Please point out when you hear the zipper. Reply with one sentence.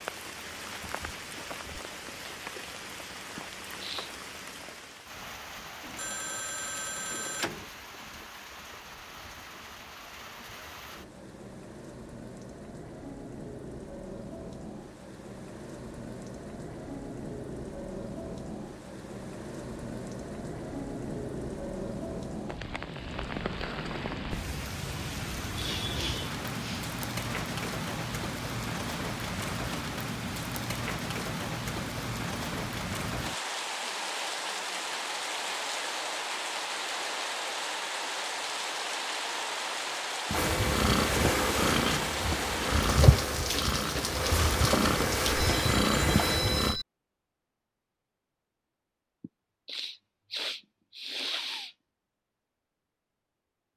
You can't hear the zipper here.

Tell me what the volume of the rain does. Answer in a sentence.
The loudness of the rain goes up.